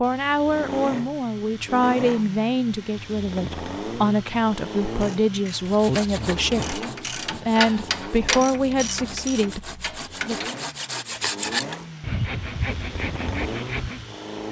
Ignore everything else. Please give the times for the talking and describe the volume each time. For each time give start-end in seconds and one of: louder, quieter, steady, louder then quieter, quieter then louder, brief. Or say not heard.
0.0-10.6 steady.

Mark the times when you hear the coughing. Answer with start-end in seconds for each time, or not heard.
not heard.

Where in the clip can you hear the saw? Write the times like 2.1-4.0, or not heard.
5.7-14.1.